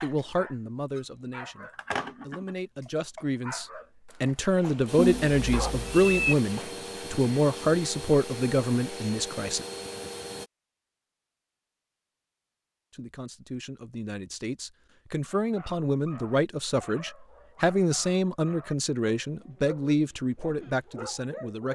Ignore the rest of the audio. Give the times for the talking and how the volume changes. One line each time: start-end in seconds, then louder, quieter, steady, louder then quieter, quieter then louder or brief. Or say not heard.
0.0-9.7 louder
12.9-21.7 louder.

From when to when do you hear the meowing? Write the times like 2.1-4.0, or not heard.
5.0-6.3.